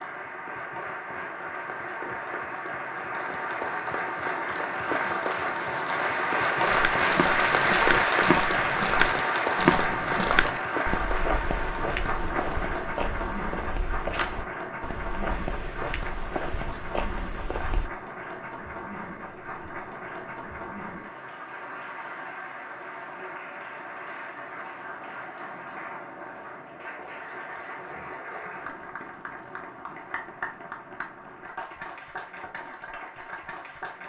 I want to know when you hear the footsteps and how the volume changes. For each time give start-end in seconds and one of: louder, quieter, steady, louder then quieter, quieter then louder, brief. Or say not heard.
6.7-17.9 quieter.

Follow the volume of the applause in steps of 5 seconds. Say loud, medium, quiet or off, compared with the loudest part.
medium, loud, medium, quiet, quiet, quiet, quiet.